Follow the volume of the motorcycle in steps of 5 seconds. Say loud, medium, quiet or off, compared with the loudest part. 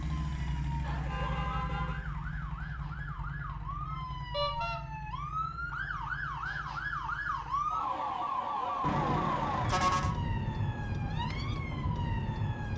loud, medium, off.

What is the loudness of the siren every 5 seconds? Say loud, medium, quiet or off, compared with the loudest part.
medium, loud, loud.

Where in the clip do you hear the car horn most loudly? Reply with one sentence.
The volume of the car horn peaks at 10 seconds.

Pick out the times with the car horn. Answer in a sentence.
The car horn can be heard from 0.8 to 2.0 s, from 4.3 to 4.8 s and from 8.8 to 10.2 s.